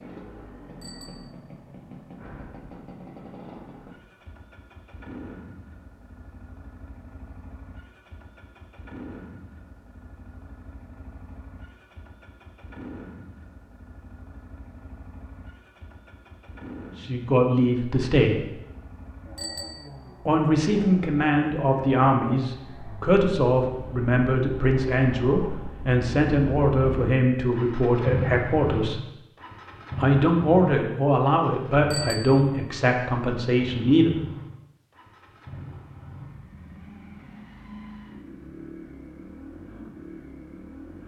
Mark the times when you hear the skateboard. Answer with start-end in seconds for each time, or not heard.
not heard.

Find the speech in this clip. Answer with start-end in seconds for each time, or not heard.
16.9-18.4, 20.2-29.1, 30.0-34.2.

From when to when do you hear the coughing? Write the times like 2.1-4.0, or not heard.
not heard.